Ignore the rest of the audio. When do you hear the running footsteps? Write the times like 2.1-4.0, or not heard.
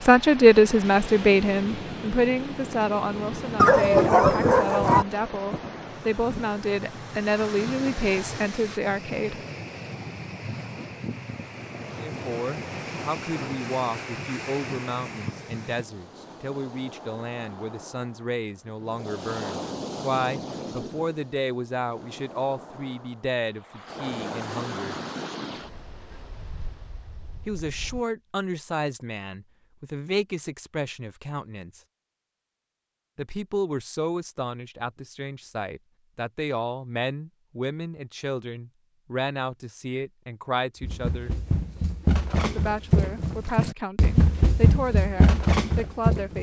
40.8-46.3.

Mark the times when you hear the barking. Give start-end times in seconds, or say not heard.
3.5-5.0.